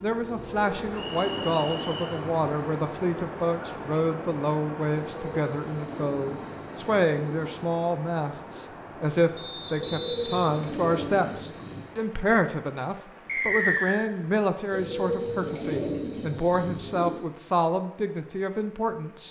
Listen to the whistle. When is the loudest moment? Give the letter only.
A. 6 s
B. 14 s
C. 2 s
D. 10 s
B.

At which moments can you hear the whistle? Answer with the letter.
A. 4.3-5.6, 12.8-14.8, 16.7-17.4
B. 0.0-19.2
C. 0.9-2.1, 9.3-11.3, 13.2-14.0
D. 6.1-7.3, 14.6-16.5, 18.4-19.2
C.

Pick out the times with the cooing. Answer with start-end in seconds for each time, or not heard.
0.3-2.9, 5.0-7.8, 9.8-11.9, 14.7-17.2.